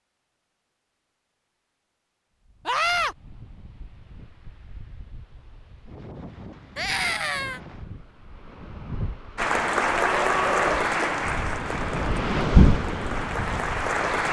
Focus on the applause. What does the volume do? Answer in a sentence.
The volume of the applause goes down, then up.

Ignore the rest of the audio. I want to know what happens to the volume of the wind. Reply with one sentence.
The loudness of the wind goes up.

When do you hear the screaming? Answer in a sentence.
You can hear the screaming from 2.6 to 3.1 s, from 6.8 to 7.6 s and from 10.0 to 10.9 s.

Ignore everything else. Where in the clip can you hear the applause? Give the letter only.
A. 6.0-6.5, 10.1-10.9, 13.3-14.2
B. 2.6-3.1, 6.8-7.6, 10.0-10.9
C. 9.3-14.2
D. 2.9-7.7
C.